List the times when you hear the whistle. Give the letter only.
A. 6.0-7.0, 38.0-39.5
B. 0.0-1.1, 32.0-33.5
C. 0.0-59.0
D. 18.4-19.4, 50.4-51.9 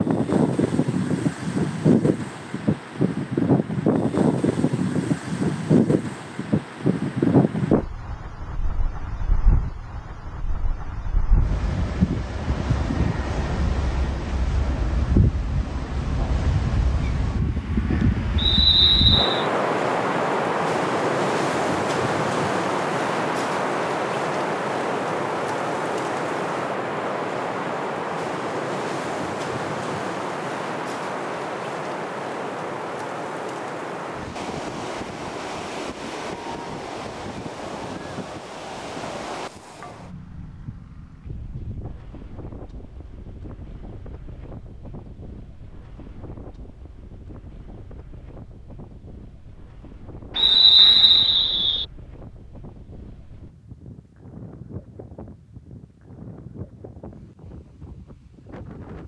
D.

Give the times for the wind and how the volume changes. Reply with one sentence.
You can hear the wind from 0.0 to 59.0 s, getting quieter.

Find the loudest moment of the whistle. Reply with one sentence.
The loudest moment of the whistle is at 51 seconds.